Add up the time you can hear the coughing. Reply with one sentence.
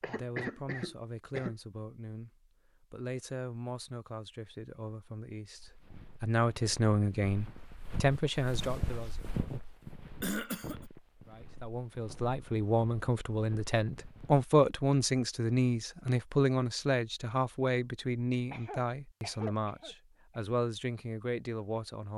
The coughing can be heard for 4 seconds in total.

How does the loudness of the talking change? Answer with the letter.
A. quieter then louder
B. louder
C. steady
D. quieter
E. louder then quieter
E.